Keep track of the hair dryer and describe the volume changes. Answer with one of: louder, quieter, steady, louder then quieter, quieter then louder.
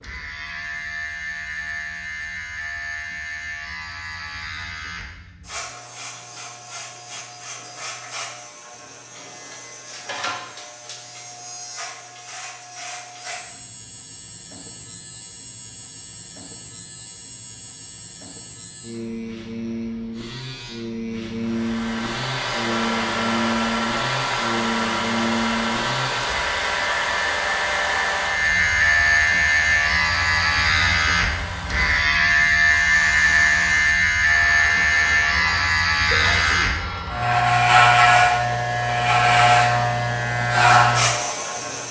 quieter.